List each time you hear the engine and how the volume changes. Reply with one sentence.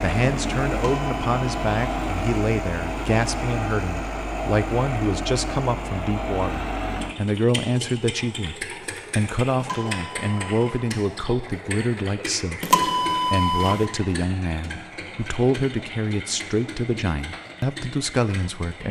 You can hear the engine from 0.0 to 18.8 s, getting quieter.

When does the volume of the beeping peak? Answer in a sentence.
The loudest moment of the beeping is at 13 seconds.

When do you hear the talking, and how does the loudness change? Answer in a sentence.
The talking can be heard from 0.0 to 18.8 s, at a steady volume.